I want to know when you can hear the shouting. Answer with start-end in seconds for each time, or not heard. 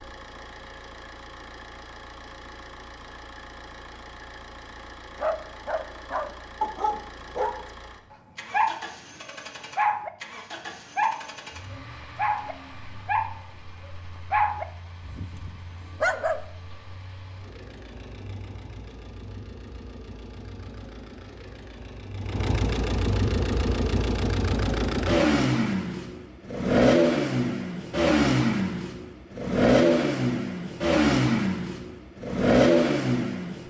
not heard.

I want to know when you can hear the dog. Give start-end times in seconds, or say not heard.
5.2-10.1, 10.9-16.4.